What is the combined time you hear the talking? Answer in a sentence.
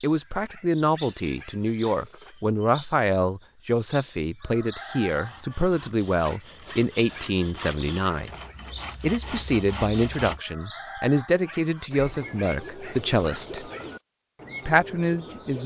The talking can be heard for 14 seconds in total.